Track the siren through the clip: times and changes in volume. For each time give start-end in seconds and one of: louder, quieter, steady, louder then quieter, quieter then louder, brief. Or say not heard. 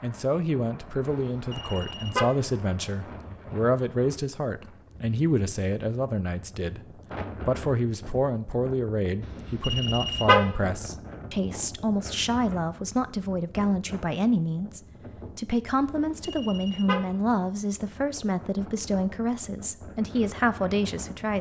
not heard.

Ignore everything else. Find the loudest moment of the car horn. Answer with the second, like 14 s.
10 s.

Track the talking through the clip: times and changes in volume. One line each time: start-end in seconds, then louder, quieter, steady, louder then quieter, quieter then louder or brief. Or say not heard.
0.0-21.3 steady.